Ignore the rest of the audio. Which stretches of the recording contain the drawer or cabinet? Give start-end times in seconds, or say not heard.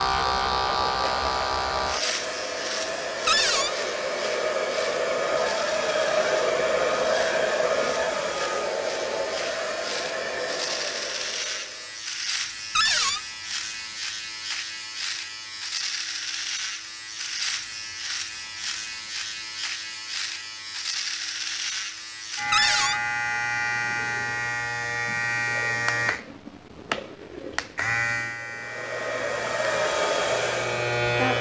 3.2-3.8, 12.8-13.2, 22.5-23.0.